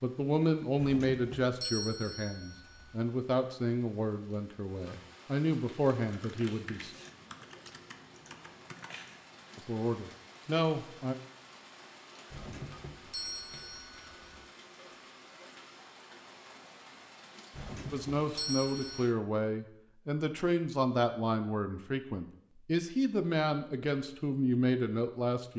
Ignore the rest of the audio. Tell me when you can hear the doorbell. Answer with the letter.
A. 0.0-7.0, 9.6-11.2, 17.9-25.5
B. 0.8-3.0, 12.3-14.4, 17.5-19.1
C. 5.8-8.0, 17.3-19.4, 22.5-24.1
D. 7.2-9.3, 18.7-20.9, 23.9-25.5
B.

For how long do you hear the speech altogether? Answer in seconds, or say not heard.
16 s.